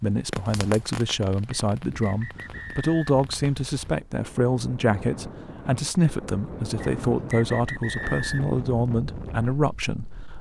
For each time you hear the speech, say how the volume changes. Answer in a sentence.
The speech can be heard from 0.0 to 10.1 s, at a steady volume.